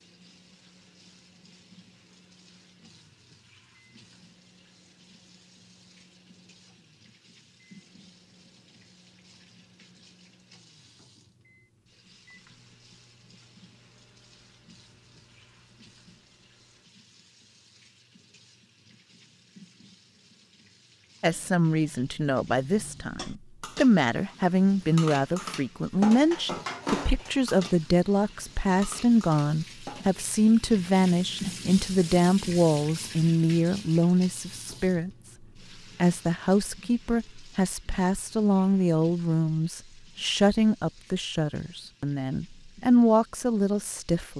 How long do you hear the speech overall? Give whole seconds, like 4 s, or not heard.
22 s.